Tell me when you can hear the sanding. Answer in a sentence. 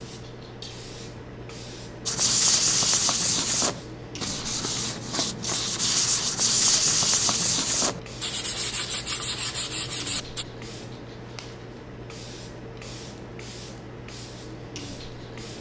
The sanding can be heard from 2.0 to 10.4 s.